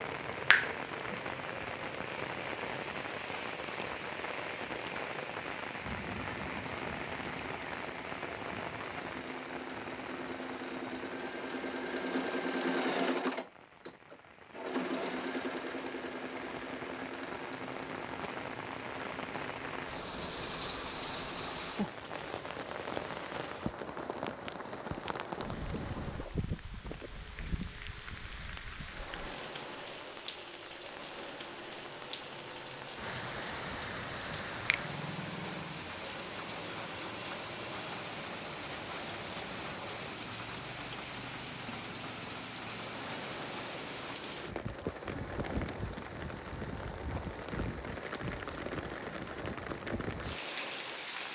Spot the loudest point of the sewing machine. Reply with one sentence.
The loudest moment of the sewing machine is at 13 seconds.